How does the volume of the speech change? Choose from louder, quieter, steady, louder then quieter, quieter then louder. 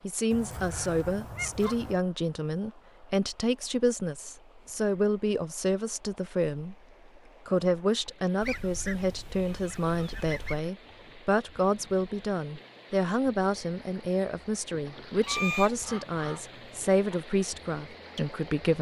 steady.